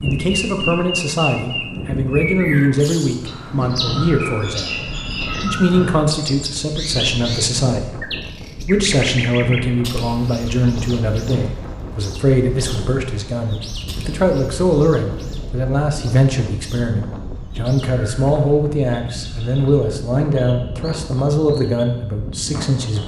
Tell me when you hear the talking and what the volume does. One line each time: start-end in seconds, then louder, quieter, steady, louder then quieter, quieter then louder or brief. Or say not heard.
0.0-23.0 steady.